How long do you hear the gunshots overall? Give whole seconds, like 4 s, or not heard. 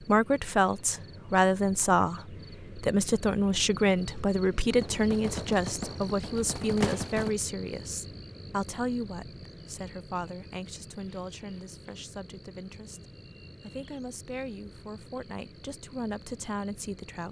3 s.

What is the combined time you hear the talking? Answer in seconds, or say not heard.
17 s.